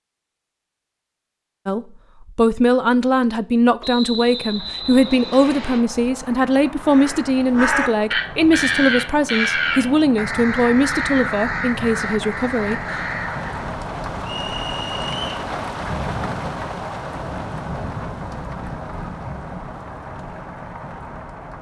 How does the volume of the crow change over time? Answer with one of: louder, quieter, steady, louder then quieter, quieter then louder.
quieter.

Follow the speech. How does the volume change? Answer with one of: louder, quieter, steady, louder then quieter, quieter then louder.
steady.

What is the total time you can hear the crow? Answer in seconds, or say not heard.
7 s.